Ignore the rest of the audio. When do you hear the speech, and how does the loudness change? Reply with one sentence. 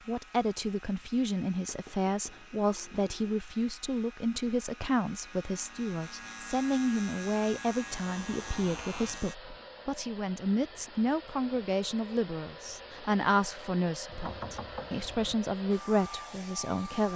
The speech can be heard from 0.1 to 17.1 s, at a steady volume.